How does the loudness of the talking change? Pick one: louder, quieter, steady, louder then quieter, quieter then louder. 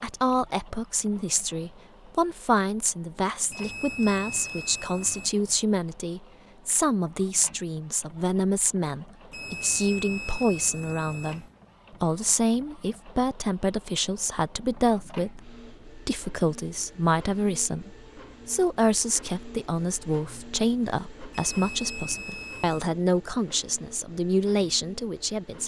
steady.